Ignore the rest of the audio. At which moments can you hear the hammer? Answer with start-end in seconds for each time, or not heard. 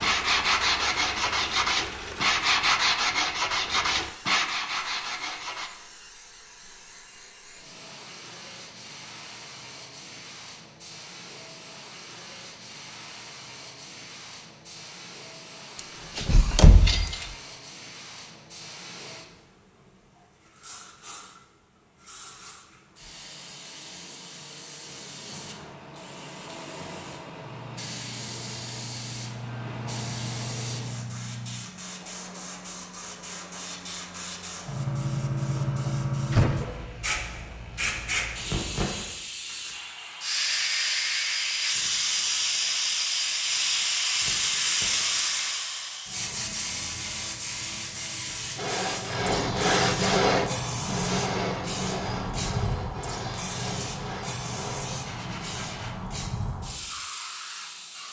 not heard.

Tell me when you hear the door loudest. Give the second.
17 s.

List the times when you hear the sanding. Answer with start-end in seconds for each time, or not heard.
0.0-5.7, 48.5-56.0.